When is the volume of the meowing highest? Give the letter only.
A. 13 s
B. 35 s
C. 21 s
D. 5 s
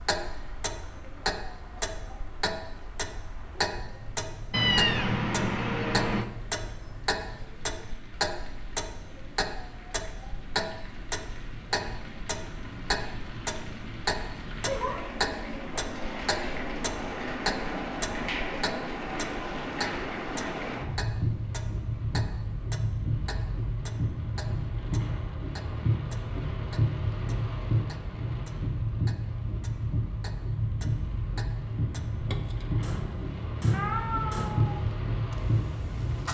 D.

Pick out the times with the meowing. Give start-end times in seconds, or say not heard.
4.5-6.2, 33.7-34.8.